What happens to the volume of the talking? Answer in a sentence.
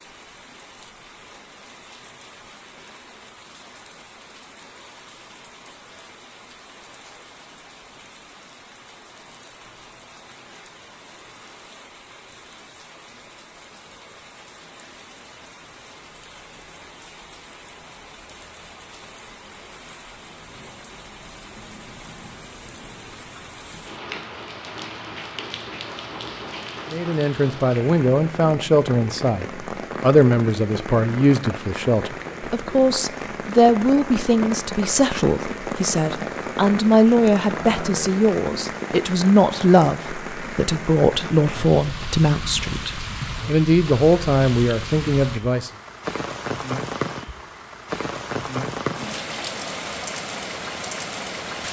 The volume of the talking stays about the same.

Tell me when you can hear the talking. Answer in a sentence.
The talking can be heard from 26.9 to 45.7 s.